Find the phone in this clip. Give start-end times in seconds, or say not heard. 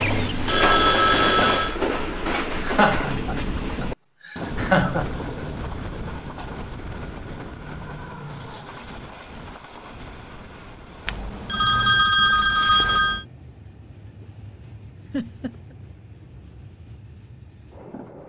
0.0-1.8, 11.1-13.2.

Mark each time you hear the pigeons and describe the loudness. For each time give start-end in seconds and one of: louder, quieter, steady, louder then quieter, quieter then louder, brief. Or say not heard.
not heard.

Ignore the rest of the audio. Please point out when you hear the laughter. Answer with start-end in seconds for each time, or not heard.
2.6-5.1, 15.1-15.8.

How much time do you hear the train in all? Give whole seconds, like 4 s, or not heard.
18 s.